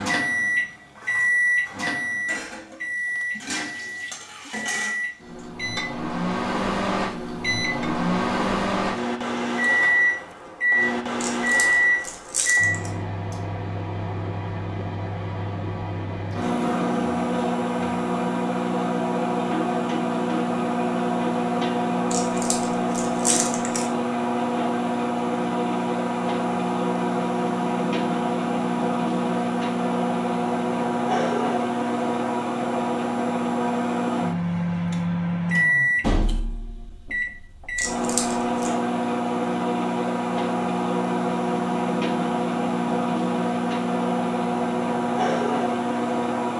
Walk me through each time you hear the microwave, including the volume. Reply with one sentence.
The microwave can be heard from 0.0 to 46.5 s, at a steady volume.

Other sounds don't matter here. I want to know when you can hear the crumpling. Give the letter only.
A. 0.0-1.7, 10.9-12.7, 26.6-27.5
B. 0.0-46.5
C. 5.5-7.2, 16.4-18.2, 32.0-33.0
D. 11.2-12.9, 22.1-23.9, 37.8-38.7
D.